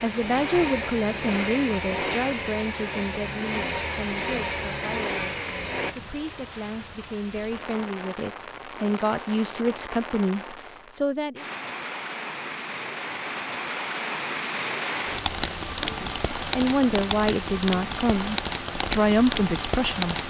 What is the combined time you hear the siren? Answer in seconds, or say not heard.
not heard.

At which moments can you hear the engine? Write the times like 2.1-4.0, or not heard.
0.0-6.0.